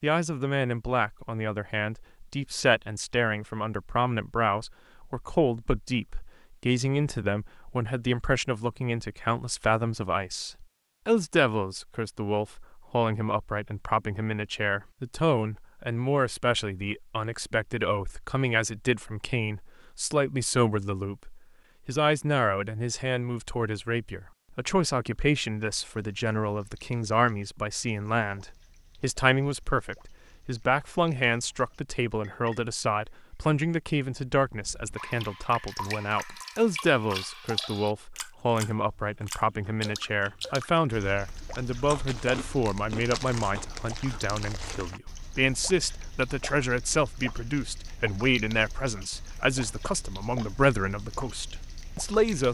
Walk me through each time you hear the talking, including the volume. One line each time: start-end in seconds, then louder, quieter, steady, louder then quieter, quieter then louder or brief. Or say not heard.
0.0-52.4 steady.